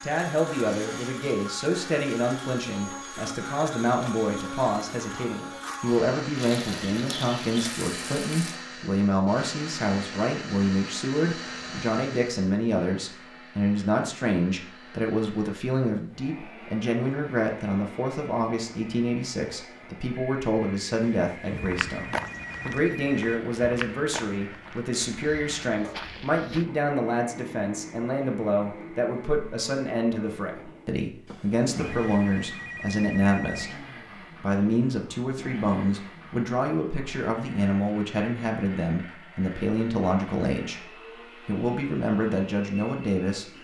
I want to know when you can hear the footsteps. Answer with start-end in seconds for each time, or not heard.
21.6-26.6.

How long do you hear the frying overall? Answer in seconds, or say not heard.
2 s.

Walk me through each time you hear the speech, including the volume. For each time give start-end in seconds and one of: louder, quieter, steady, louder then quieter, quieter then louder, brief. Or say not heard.
0.0-43.5 steady.